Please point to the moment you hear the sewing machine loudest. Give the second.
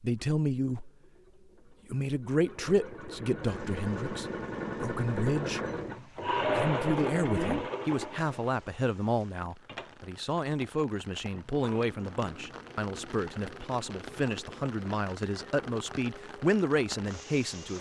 7 s.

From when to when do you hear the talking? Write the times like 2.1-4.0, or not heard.
0.0-0.9, 1.9-5.6, 6.4-17.7.